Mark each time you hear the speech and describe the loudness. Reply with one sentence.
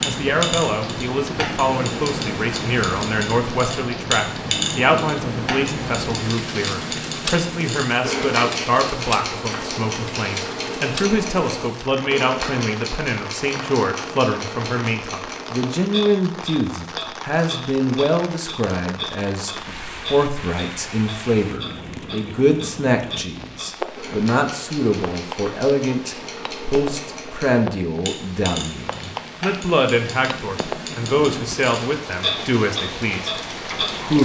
The speech can be heard from 0.0 to 34.2 s, at a steady volume.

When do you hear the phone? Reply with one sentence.
You can't hear the phone here.